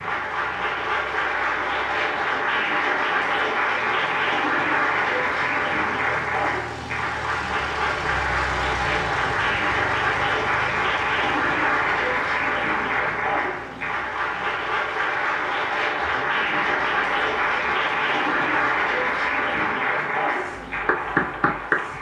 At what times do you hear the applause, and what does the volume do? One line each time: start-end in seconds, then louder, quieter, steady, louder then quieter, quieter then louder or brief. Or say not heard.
0.0-21.9 steady.